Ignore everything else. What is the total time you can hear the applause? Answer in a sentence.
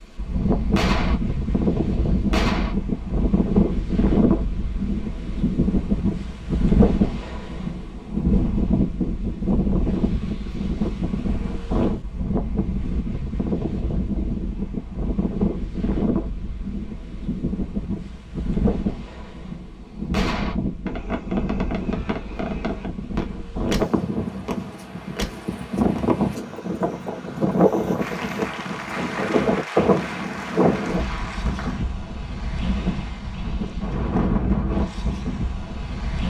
The applause can be heard for 4 seconds in total.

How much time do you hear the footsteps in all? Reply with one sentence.
You can't hear the footsteps here.